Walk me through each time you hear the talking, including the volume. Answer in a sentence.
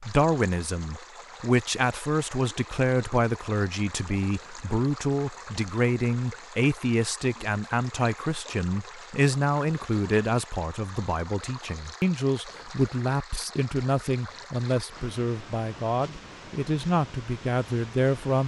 You can hear the talking from 0.1 to 18.4 s, at a steady volume.